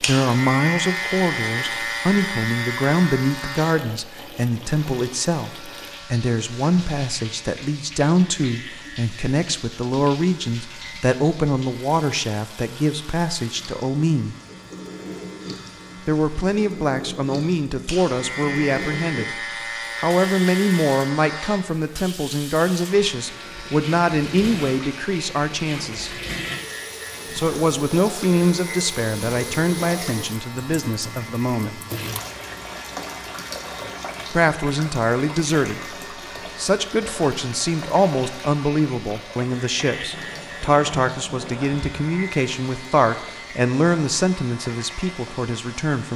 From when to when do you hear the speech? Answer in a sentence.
You can hear the speech from 0.0 to 14.3 s, from 16.1 to 26.2 s, from 27.3 to 31.8 s, from 34.3 to 36.0 s and from 36.5 to 46.1 s.